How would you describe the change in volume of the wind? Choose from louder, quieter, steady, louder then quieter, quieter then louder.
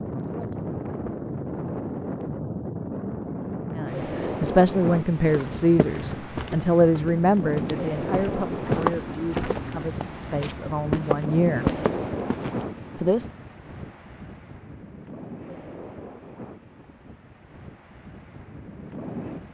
quieter.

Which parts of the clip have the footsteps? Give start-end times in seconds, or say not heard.
5.2-12.7.